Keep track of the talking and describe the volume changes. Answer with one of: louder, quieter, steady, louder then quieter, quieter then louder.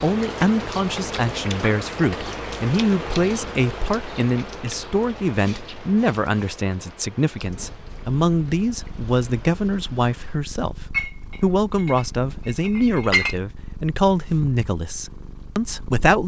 steady.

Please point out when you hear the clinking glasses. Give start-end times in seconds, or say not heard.
10.9-13.3.